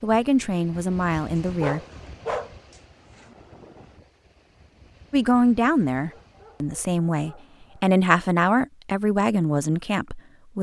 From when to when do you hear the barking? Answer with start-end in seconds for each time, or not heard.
1.4-3.4, 6.0-7.9.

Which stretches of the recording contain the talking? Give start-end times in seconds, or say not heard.
0.0-1.8, 5.1-10.5.